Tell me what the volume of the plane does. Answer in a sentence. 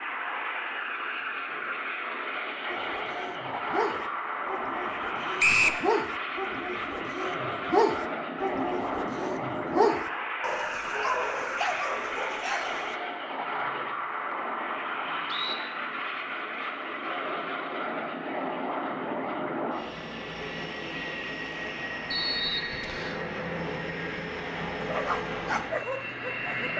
The volume of the plane stays about the same.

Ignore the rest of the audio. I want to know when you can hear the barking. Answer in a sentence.
The barking can be heard from 2.6 to 12.9 s and from 24.8 to 26.7 s.